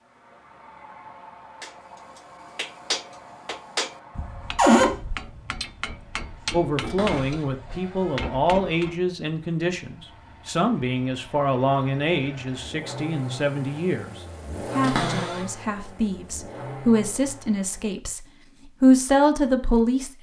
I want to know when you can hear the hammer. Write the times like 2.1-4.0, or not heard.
1.6-9.0.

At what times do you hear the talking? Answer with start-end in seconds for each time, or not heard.
6.5-20.1.